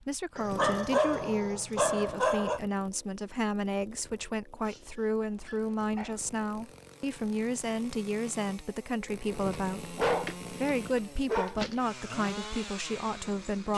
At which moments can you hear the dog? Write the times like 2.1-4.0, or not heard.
0.3-2.6, 4.7-6.3, 9.3-11.8.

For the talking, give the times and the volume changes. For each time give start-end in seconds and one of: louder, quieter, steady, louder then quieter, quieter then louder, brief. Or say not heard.
0.0-13.7 steady.